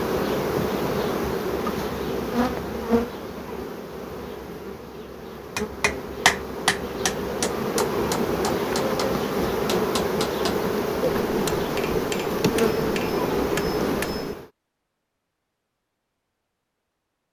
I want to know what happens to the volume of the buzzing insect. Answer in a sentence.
The volume of the buzzing insect goes down, then up.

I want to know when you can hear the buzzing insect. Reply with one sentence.
The buzzing insect can be heard from 0.0 to 14.4 s.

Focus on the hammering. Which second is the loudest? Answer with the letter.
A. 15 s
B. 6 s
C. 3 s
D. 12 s
B.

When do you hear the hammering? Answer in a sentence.
The hammering can be heard from 5.5 to 14.3 s.